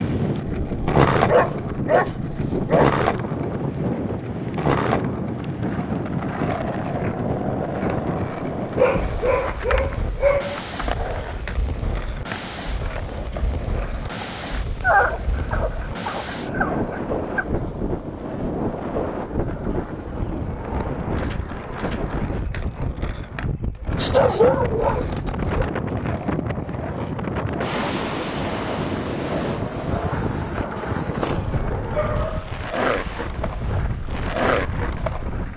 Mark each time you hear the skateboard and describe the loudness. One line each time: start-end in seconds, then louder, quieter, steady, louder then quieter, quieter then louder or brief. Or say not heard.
0.0-35.5 quieter then louder.